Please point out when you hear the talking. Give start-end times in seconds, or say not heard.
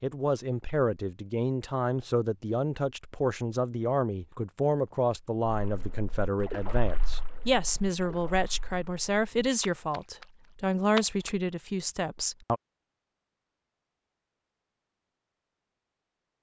0.0-12.6.